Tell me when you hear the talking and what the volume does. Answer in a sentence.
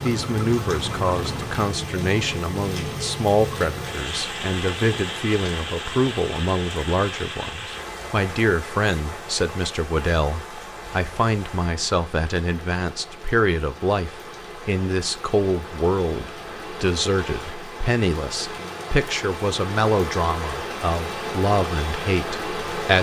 The talking can be heard from 0.0 to 22.9 s, at a steady volume.